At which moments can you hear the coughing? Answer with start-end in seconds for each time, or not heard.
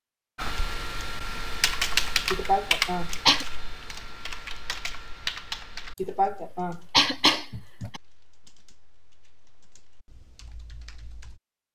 2.3-3.5, 6.0-8.0.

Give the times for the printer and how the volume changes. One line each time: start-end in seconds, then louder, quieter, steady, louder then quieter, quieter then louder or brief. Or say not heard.
not heard.